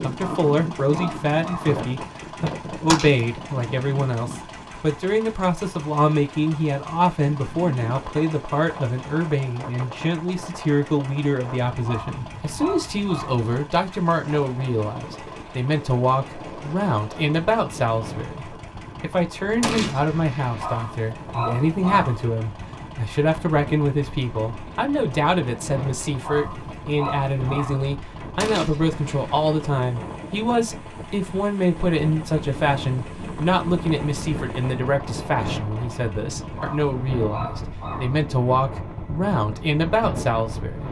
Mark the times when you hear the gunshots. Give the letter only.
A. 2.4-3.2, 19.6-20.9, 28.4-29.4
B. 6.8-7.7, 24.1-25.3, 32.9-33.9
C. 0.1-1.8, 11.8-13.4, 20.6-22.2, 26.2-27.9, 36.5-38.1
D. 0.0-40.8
A.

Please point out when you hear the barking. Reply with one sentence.
The barking can be heard from 0.1 to 1.8 s, from 11.8 to 13.4 s, from 20.6 to 22.2 s, from 26.2 to 27.9 s and from 36.5 to 38.1 s.